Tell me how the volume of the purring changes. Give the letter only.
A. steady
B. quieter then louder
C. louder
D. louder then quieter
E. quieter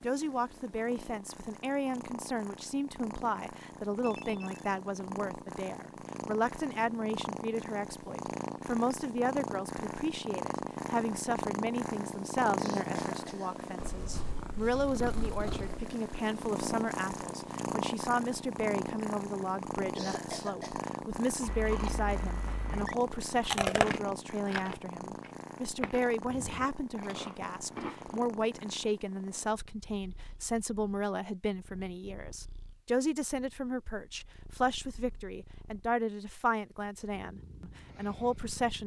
D.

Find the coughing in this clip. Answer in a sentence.
The coughing can be heard from 12.6 to 13.6 s and from 19.9 to 20.9 s.